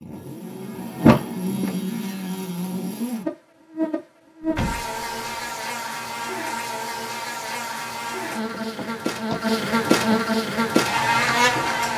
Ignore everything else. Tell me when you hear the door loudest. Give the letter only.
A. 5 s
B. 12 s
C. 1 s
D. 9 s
C.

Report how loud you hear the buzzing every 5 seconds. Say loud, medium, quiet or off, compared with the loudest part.
medium, medium, loud.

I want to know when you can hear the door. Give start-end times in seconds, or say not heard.
1.0-1.8, 4.4-5.0, 8.5-10.2.